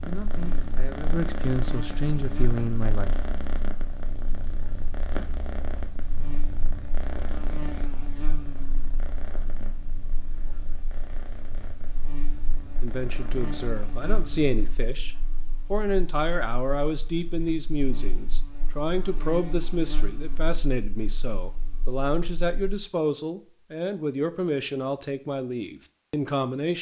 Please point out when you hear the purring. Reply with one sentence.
The purring can be heard from 0.0 to 14.8 s.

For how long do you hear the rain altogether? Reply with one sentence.
You can't hear the rain here.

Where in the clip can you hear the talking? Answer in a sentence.
The talking can be heard from 0.0 to 3.1 s and from 12.8 to 26.7 s.